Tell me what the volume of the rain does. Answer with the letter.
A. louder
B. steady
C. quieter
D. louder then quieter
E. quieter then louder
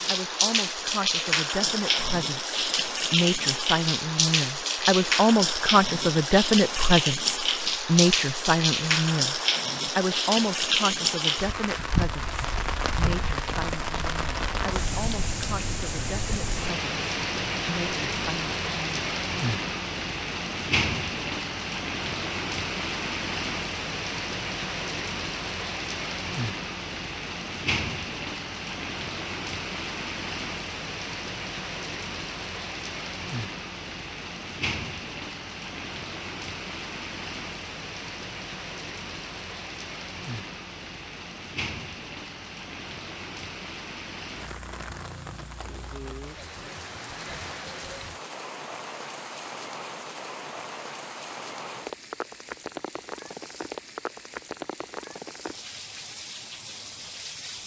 C.